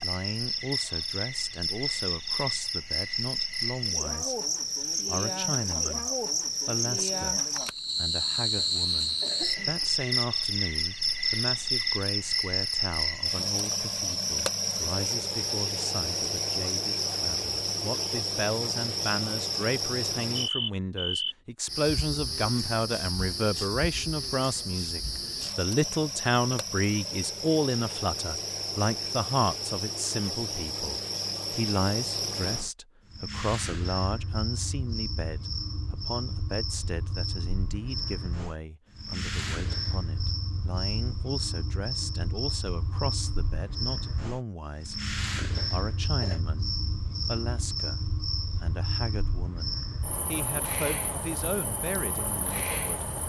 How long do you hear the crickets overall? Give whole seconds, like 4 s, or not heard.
53 s.